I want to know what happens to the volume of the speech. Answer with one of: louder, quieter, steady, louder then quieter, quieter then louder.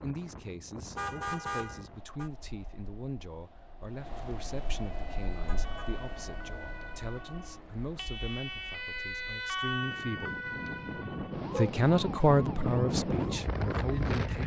louder.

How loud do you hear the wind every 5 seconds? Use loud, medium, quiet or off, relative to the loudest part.
quiet, quiet, loud.